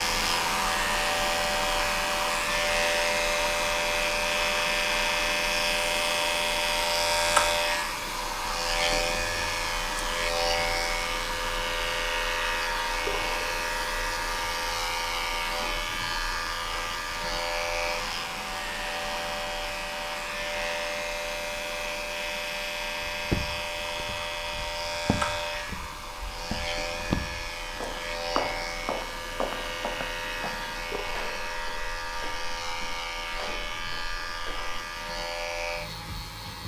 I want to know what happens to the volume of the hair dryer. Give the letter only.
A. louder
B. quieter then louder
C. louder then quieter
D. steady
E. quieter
E.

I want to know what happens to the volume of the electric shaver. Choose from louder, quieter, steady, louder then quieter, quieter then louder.
quieter.